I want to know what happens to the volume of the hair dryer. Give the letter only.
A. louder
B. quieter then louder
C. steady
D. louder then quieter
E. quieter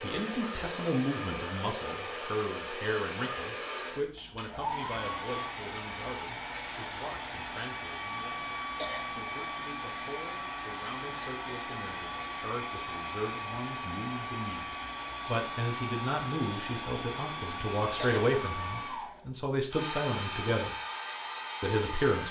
C.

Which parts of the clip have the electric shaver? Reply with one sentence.
You can't hear the electric shaver here.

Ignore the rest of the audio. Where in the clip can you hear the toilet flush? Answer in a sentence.
You can't hear the toilet flush here.